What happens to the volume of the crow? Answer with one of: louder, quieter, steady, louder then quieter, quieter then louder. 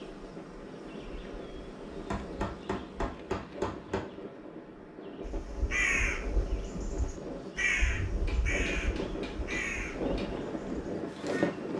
quieter.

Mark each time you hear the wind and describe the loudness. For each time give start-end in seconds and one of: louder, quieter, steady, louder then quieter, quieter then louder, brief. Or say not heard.
0.0-11.7 louder.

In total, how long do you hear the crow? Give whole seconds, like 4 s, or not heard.
6 s.